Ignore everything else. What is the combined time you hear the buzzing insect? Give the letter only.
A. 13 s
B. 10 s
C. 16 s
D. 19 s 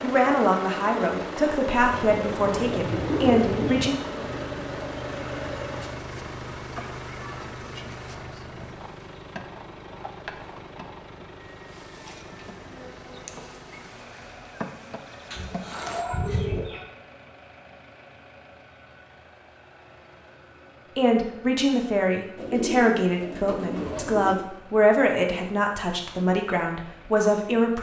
C.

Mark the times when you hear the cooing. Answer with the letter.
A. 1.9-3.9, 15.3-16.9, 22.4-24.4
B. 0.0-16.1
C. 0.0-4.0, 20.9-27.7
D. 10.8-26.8
A.